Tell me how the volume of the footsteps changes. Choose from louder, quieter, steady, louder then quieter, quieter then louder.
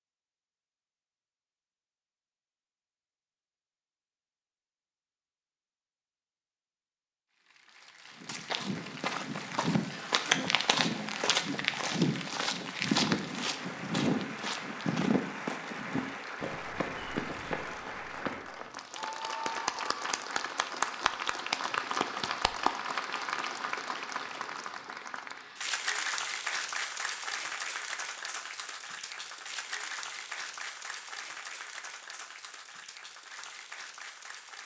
quieter.